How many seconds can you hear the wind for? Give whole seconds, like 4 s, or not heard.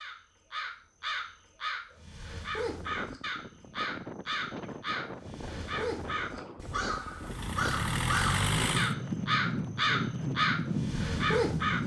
9 s.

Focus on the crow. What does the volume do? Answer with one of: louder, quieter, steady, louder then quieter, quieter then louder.
louder.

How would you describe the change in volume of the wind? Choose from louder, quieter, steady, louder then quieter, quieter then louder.
louder.